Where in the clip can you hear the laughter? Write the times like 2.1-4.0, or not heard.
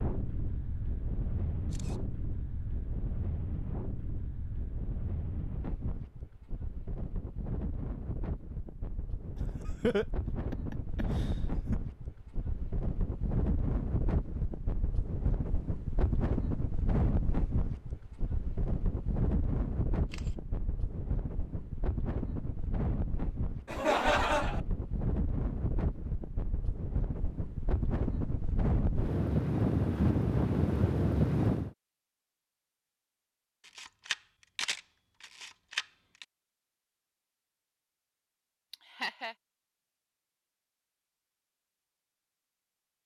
9.3-11.8, 23.6-24.6, 38.7-39.4.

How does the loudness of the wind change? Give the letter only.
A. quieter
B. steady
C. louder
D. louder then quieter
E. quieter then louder
C.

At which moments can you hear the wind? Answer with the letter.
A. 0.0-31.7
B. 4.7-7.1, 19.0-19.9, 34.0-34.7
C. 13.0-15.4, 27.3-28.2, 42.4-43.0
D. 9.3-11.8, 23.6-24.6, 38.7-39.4
A.